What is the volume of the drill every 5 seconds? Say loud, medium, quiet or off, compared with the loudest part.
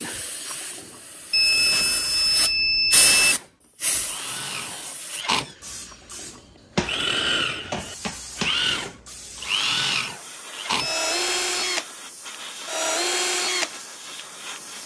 quiet, loud, loud.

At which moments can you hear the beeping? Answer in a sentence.
You can hear the beeping from 1.3 to 3.4 s and from 10.8 to 11.8 s.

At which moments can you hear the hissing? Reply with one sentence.
You can hear the hissing from 0.0 to 14.8 s.